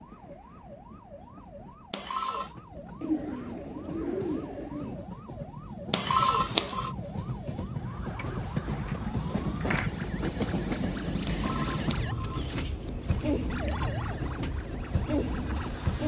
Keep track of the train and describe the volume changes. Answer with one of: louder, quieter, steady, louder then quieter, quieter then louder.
louder.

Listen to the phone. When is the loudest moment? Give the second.
6 s.